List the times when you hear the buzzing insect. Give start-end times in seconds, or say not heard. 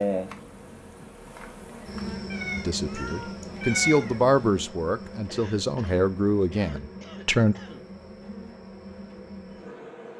0.0-10.1.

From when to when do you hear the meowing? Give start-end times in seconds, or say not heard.
2.3-4.6.